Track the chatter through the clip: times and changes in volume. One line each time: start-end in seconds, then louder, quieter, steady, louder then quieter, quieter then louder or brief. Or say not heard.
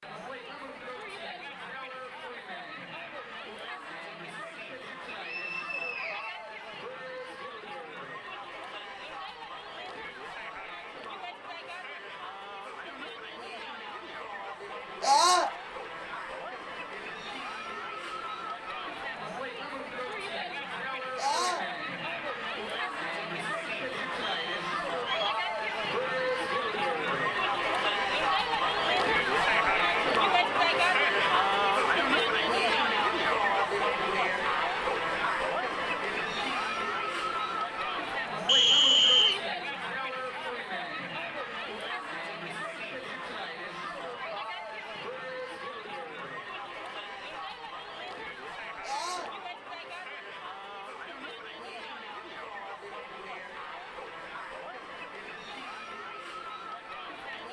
0.0-57.4 louder then quieter.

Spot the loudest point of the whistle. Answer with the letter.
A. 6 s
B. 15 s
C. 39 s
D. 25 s
C.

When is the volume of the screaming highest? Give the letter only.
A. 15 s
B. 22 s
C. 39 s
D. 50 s
A.